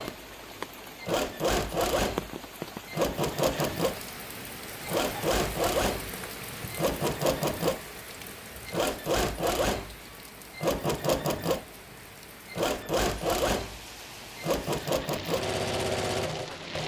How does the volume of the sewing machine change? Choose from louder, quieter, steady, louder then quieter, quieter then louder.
steady.